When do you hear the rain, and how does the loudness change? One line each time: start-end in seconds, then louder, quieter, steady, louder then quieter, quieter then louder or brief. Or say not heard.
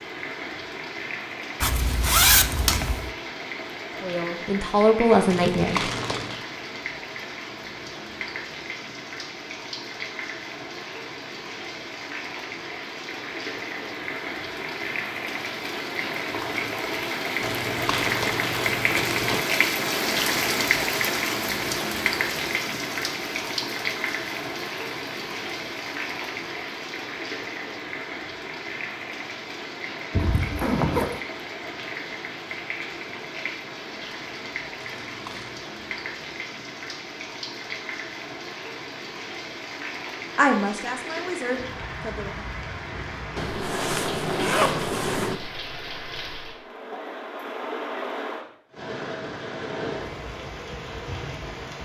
0.0-51.8 louder then quieter.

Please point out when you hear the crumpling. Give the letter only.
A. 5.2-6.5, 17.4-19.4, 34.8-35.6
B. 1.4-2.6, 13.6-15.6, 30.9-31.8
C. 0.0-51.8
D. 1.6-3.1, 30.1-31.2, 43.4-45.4
A.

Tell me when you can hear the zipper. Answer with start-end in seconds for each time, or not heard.
1.6-3.1, 30.1-31.2, 43.4-45.4.